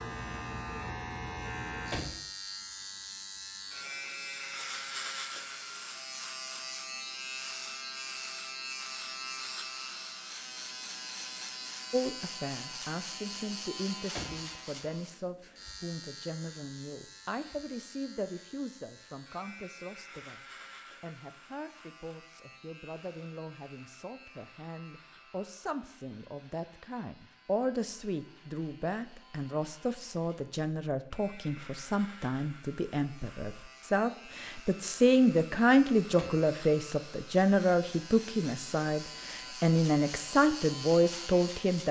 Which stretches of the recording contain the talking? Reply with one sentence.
The talking can be heard from 11.9 to 41.8 s.